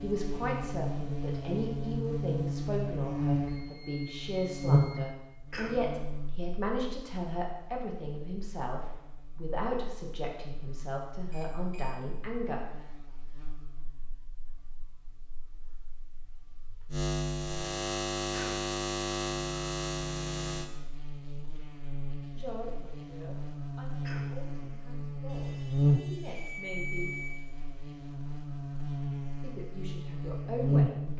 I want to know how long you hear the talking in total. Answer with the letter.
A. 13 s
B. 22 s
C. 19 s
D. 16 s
C.